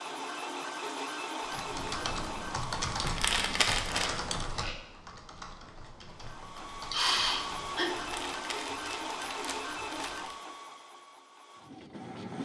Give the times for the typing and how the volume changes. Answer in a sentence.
The typing can be heard from 1.4 to 8.2 s, getting quieter.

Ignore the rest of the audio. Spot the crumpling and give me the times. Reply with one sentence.
The crumpling can be heard from 3.0 to 4.2 s and from 8.0 to 10.3 s.